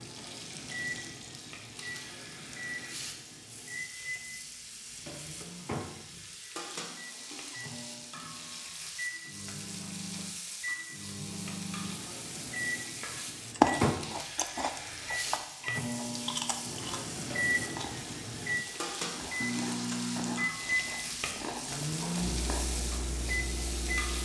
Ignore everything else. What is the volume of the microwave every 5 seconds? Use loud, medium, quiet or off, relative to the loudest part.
medium, medium, loud, loud, loud.